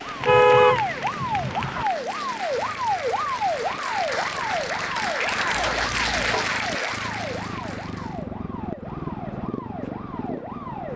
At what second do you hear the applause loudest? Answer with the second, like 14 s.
6 s.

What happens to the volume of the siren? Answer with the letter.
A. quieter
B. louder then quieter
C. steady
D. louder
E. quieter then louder
A.